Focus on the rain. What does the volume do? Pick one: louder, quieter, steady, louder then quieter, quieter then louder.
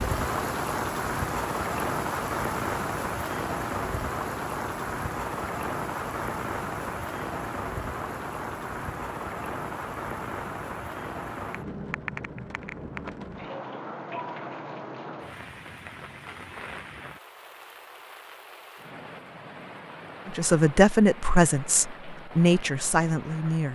quieter.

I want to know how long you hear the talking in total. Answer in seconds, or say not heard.
3 s.